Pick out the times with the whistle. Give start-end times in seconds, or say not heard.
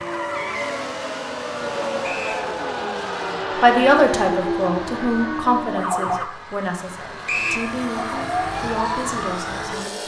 2.0-2.5, 7.2-7.7.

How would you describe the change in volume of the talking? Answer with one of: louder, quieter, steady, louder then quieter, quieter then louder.
quieter.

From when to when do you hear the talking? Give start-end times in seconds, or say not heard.
3.6-10.0.